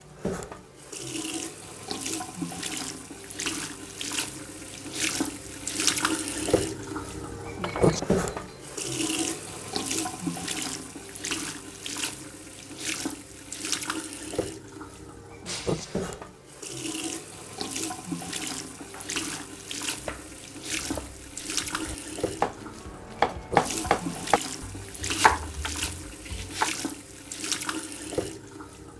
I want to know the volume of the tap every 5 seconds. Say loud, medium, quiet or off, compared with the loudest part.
medium, loud, medium, medium, medium, medium.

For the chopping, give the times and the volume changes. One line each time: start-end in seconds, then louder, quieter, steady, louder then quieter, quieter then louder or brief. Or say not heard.
18.8-26.7 louder.